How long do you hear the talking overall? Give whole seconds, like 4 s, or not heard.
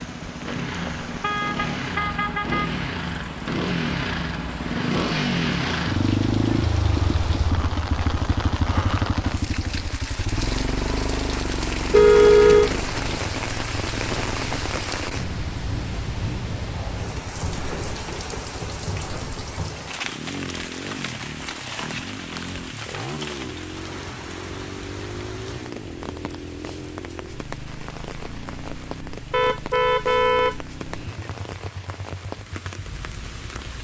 not heard.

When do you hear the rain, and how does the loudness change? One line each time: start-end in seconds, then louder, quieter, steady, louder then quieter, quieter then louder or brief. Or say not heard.
0.0-33.7 louder then quieter.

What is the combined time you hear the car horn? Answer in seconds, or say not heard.
5 s.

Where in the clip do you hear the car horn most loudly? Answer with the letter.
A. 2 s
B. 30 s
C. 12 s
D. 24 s
C.